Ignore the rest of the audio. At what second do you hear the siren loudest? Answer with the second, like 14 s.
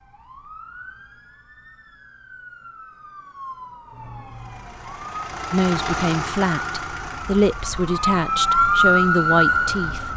9 s.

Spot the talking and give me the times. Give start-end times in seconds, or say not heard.
5.5-10.1.